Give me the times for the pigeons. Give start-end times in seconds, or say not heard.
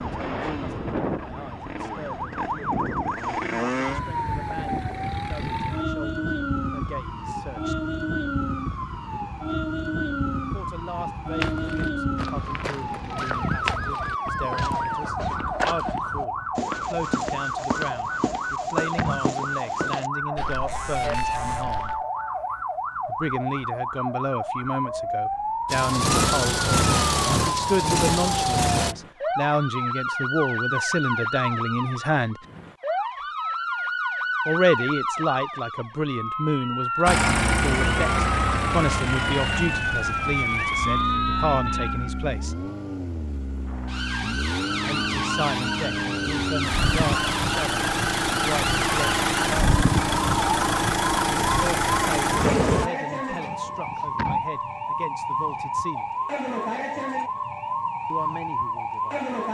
not heard.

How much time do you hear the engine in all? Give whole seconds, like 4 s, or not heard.
19 s.